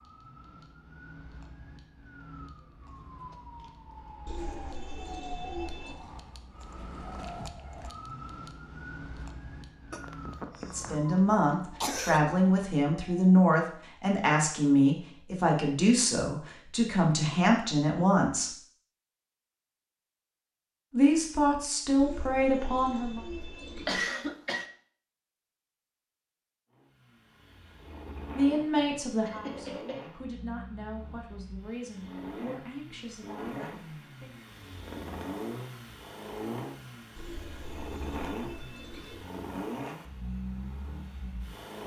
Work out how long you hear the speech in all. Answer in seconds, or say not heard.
16 s.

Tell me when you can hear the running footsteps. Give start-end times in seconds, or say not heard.
not heard.